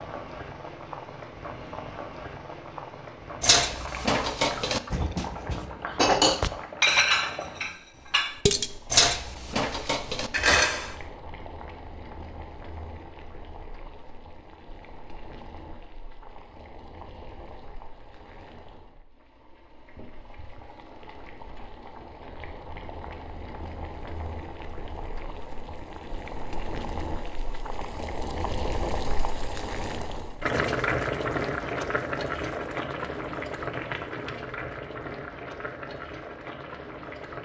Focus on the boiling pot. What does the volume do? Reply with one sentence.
The loudness of the boiling pot goes down, then up.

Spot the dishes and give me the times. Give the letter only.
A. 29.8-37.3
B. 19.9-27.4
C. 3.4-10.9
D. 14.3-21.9
C.